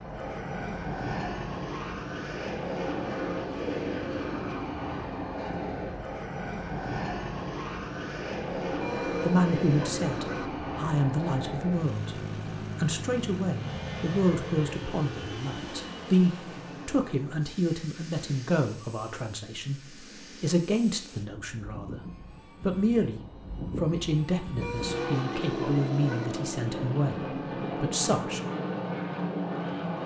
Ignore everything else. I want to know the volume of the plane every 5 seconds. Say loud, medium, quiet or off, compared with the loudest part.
loud, loud, loud, medium, medium, loud.